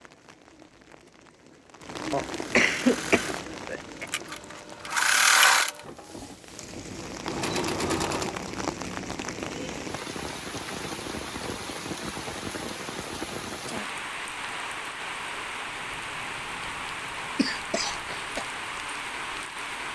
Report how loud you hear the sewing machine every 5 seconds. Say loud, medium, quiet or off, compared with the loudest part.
medium, loud, off, off.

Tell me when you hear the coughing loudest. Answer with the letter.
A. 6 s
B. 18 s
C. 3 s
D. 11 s
C.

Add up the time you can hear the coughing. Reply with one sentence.
The coughing can be heard for 3 seconds in total.